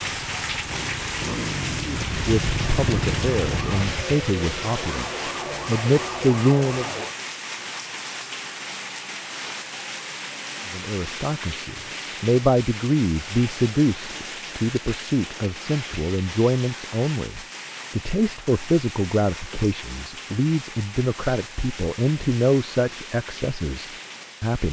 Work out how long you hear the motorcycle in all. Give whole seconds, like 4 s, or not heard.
4 s.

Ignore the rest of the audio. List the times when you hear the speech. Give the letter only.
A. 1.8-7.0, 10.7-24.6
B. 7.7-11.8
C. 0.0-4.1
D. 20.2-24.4
A.